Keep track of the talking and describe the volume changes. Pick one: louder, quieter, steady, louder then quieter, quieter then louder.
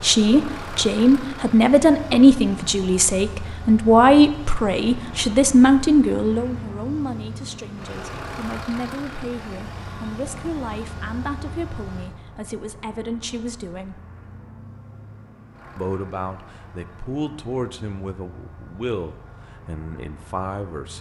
quieter.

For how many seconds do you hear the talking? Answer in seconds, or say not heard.
19 s.